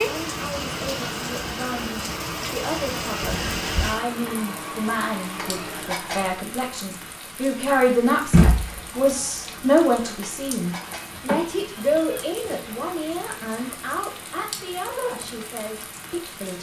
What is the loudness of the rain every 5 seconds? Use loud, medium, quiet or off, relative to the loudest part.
loud, loud, medium, medium.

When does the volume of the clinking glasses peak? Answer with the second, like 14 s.
6 s.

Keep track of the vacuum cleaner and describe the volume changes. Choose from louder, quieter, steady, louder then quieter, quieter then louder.
steady.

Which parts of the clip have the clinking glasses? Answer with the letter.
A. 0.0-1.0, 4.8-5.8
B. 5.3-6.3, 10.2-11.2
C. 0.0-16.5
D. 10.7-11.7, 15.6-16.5
B.